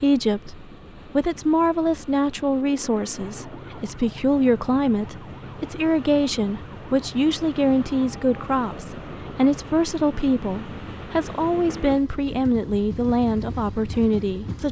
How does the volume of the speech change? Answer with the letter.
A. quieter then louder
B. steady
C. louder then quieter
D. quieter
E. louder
B.